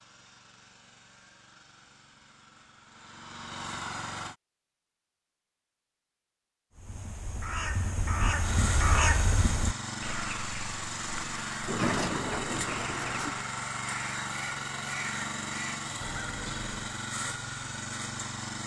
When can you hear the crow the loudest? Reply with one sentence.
The loudest moment of the crow is at 9 seconds.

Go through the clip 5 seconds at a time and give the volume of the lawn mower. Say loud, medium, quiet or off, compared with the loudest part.
medium, loud, loud, loud.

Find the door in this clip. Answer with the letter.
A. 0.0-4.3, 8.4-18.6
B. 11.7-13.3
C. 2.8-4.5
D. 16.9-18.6
B.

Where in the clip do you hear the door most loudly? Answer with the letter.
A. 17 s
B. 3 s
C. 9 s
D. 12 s
D.